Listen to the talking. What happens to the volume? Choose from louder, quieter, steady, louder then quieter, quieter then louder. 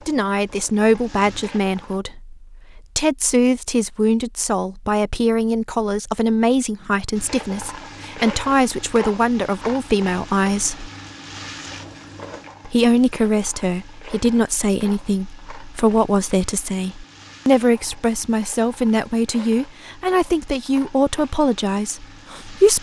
steady.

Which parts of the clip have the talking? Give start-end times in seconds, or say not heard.
0.1-10.9, 12.7-22.7.